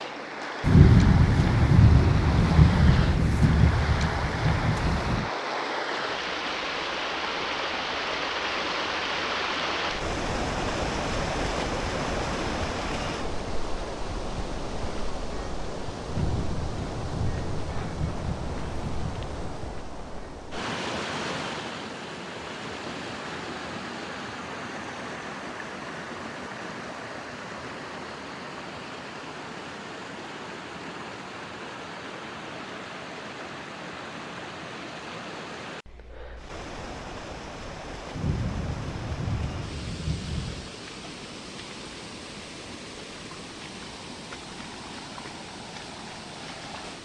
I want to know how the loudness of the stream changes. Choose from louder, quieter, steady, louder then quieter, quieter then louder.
quieter.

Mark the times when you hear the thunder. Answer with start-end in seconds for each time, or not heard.
0.6-5.3, 16.1-19.7, 38.1-40.7.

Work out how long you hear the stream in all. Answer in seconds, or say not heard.
47 s.